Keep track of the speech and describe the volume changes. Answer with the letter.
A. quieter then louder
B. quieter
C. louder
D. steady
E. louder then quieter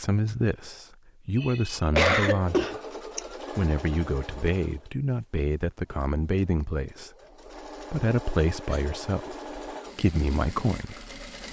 D.